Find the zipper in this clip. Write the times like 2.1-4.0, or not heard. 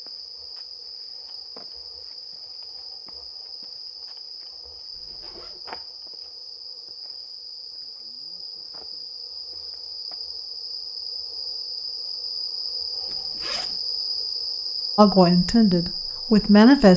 4.9-5.7, 13.1-13.8.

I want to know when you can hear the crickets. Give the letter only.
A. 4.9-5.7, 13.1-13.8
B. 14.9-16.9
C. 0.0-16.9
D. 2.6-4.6
C.